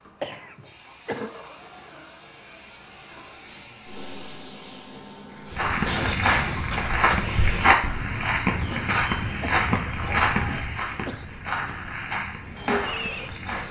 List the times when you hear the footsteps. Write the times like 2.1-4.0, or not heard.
5.5-13.6.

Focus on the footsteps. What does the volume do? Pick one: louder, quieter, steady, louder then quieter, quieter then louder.
quieter.